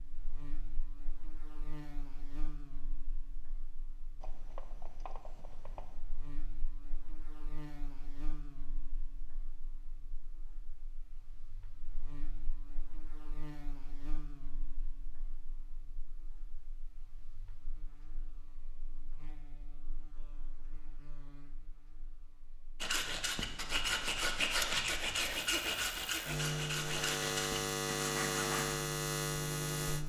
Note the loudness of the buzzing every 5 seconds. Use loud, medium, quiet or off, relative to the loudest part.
quiet, quiet, quiet, quiet, quiet, loud.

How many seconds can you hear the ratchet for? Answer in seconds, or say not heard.
2 s.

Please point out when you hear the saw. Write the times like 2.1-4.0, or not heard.
22.8-28.8.